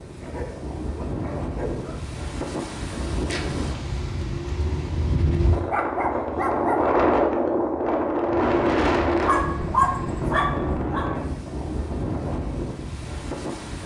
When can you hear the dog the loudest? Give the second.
10 s.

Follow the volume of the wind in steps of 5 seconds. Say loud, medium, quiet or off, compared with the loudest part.
medium, loud, medium.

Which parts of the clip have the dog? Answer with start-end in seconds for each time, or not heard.
0.2-2.0, 5.7-6.8, 9.2-11.1.